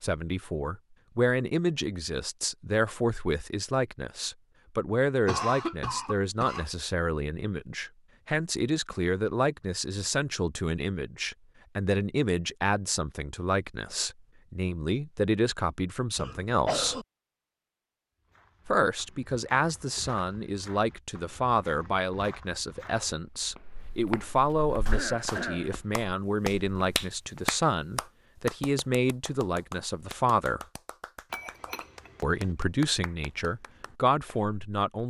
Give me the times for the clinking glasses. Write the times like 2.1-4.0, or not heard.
31.3-32.5.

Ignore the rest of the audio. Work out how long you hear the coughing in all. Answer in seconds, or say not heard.
3 s.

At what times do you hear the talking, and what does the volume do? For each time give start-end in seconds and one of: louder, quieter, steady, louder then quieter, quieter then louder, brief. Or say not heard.
0.0-17.0 steady
18.6-30.6 steady
32.2-35.0 brief.